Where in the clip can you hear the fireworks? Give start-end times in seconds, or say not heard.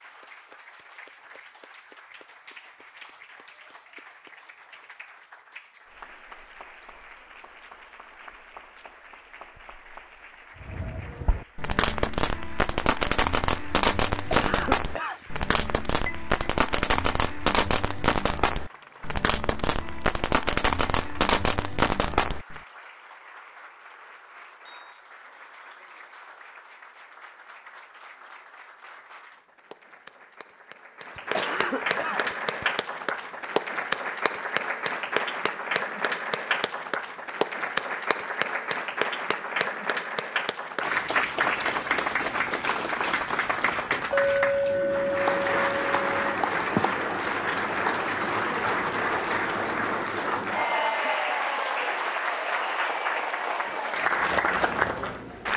10.6-22.6.